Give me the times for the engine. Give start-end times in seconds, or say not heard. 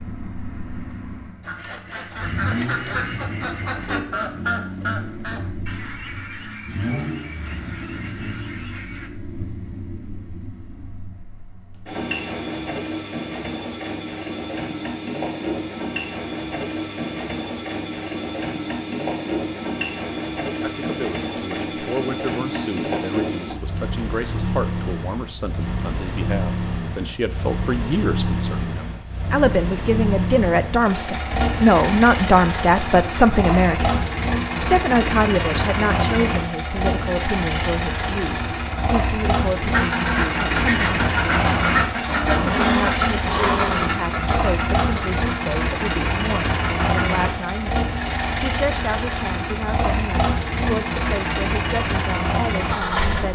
0.0-53.3.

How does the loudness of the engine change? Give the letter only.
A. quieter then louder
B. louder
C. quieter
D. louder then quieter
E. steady
B.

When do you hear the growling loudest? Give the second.
43 s.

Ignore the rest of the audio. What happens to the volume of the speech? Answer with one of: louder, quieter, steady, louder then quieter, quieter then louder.
louder then quieter.